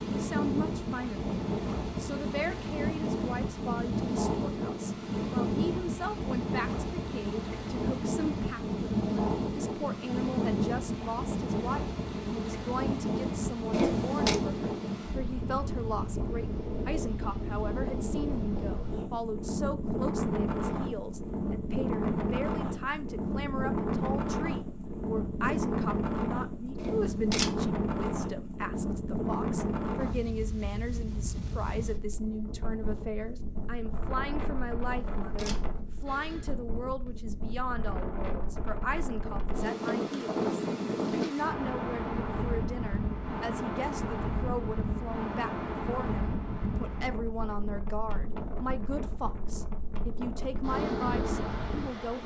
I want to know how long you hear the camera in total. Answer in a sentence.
You can hear the camera for 3 seconds altogether.